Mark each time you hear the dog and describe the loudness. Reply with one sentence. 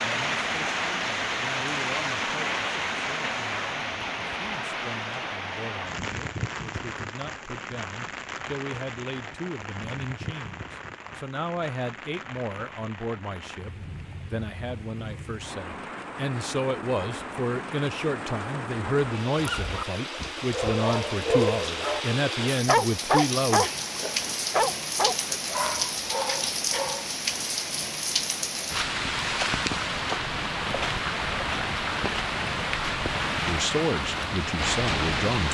The dog can be heard from 19.4 to 27.1 s, getting louder then quieter.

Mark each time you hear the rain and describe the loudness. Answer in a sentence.
You can hear the rain from 0.0 to 35.4 s, getting quieter then louder.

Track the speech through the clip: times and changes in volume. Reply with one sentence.
You can hear the speech from 0.0 to 23.8 s, getting louder; and briefly from 33.3 to 35.4 s.